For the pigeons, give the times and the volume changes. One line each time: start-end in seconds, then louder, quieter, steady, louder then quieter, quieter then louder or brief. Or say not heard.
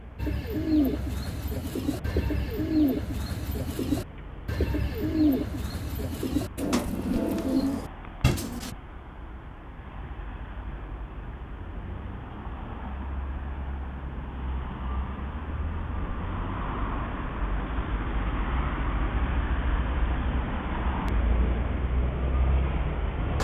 0.1-8.7 steady.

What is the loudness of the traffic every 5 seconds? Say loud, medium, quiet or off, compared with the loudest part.
quiet, quiet, medium, loud, loud.